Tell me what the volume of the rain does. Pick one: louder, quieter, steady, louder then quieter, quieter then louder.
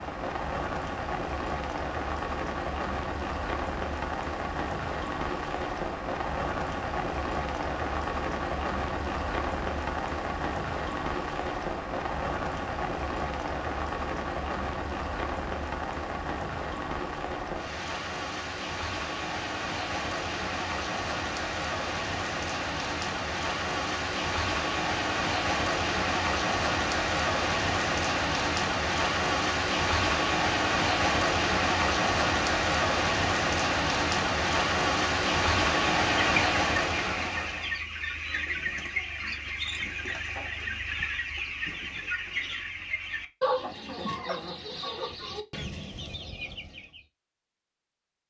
louder.